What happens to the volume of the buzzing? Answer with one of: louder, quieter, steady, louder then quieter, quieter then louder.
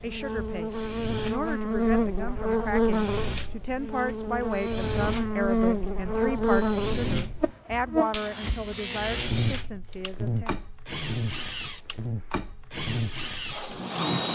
quieter.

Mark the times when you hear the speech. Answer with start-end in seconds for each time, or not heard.
0.0-10.6.